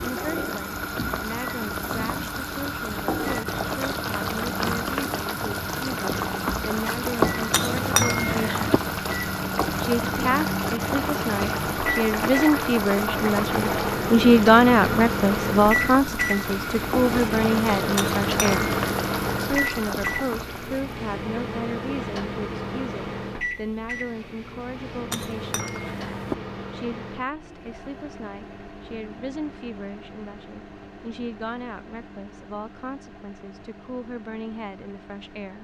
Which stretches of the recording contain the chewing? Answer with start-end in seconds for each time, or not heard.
not heard.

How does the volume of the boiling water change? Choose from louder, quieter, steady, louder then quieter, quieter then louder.
steady.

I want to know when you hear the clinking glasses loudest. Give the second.
8 s.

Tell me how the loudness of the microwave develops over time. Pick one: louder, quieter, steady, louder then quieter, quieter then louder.
louder then quieter.